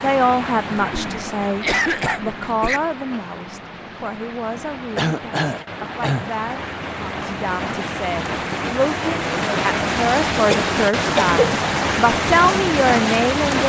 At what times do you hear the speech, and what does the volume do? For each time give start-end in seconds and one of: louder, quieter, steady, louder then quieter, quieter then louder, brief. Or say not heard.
0.0-13.6 quieter then louder.